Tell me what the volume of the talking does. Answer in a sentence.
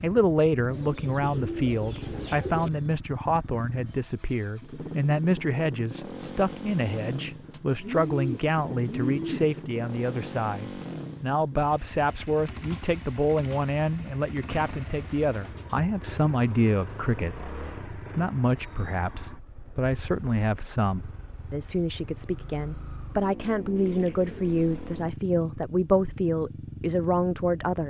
The loudness of the talking stays about the same.